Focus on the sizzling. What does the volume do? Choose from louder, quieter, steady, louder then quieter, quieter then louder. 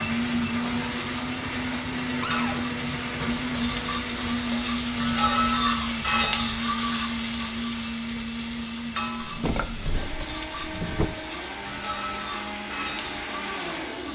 louder then quieter.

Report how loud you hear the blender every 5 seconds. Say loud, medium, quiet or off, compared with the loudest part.
loud, loud, medium.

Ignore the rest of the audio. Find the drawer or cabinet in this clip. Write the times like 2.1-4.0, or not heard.
2.2-2.6, 9.2-11.1.